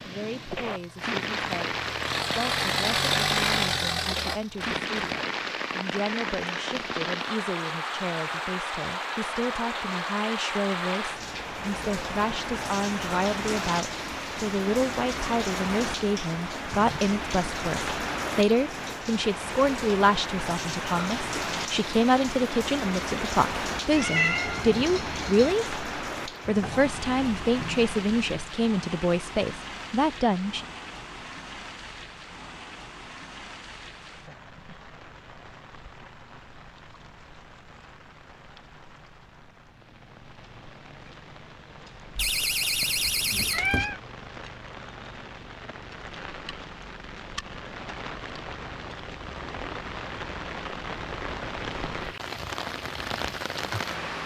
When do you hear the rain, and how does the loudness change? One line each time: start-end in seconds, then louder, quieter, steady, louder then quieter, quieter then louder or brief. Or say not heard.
0.0-54.2 quieter then louder.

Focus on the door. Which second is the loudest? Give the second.
43 s.